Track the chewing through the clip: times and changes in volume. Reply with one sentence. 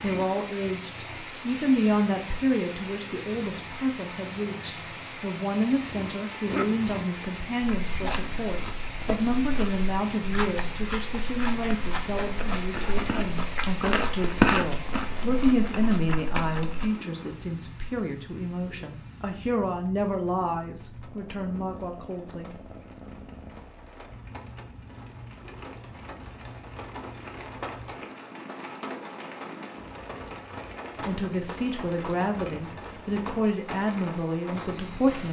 You can hear the chewing from 7.6 to 16.9 s, getting louder then quieter.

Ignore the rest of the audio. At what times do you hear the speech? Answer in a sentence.
The speech can be heard from 0.0 to 22.5 s and from 31.1 to 35.2 s.